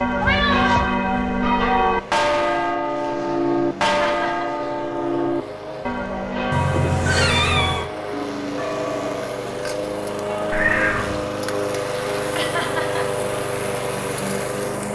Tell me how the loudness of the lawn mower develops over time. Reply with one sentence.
The volume of the lawn mower goes up.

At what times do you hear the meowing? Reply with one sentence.
You can hear the meowing from 0.2 to 0.9 s, from 6.5 to 7.8 s and from 10.5 to 11.2 s.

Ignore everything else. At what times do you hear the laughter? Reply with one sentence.
You can hear the laughter from 3.8 to 4.5 s and from 12.3 to 13.1 s.